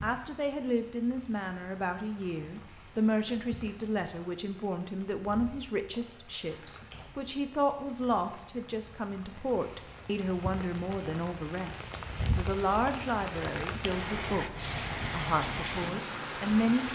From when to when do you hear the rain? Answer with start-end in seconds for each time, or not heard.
0.0-16.8.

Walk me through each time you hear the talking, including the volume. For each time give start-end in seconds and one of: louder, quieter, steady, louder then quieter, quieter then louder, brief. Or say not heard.
0.0-16.8 steady.